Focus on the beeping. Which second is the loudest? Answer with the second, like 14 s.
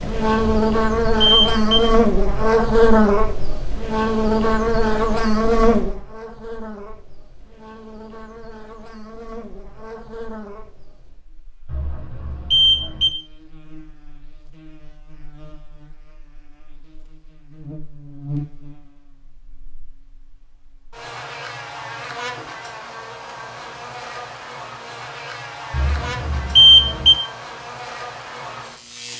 27 s.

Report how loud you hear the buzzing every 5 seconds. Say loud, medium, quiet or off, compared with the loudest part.
loud, medium, quiet, quiet, quiet, quiet.